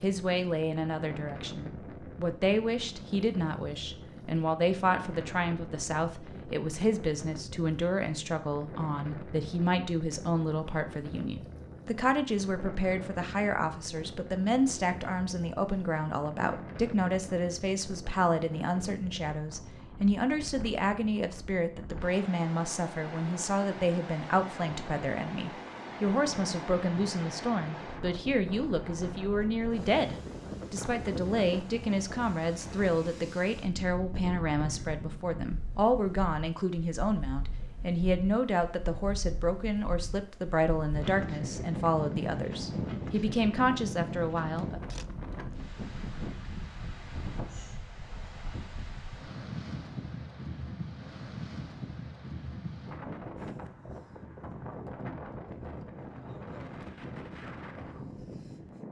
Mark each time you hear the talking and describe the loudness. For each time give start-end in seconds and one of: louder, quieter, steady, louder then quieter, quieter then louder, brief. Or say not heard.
0.0-44.8 steady.